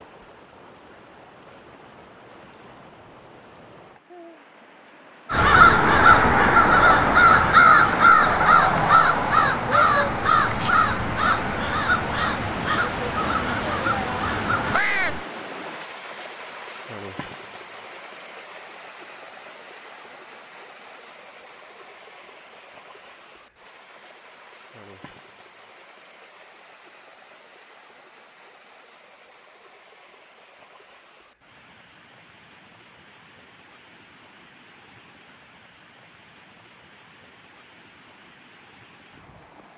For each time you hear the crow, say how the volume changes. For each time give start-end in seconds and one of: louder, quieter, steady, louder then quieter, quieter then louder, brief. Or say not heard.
5.3-15.2 quieter.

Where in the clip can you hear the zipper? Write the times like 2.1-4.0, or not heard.
not heard.